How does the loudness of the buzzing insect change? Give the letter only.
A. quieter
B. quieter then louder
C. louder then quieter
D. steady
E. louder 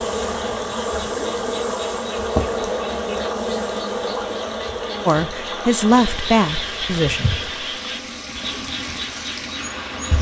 A.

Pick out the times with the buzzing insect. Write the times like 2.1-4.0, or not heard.
0.0-10.1.